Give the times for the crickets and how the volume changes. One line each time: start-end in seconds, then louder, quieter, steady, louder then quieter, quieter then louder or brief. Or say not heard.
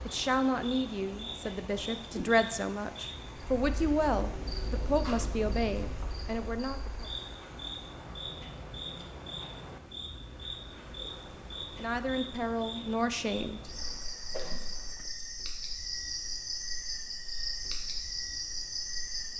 0.0-19.3 louder.